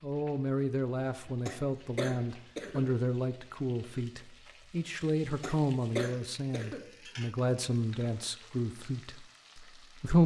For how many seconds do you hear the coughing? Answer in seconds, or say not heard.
3 s.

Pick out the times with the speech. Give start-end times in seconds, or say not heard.
0.0-10.2.